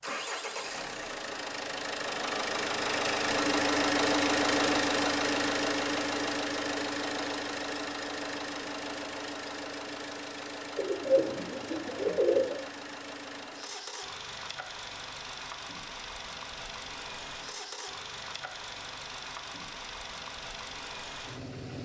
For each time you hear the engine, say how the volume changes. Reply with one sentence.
The engine can be heard from 0.0 to 21.8 s, getting quieter.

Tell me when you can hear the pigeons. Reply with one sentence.
You can hear the pigeons from 10.8 to 12.6 s.